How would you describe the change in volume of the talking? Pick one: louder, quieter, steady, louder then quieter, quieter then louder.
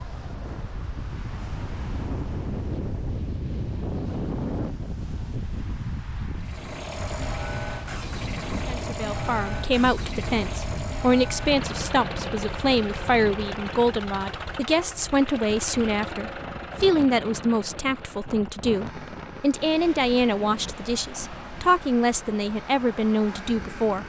steady.